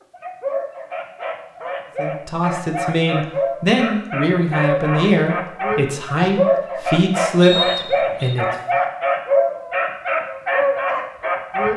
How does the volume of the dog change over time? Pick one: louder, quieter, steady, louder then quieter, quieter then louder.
louder.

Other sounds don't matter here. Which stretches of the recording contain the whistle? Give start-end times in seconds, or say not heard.
7.4-8.3.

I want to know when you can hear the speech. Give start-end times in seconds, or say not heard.
1.9-8.4.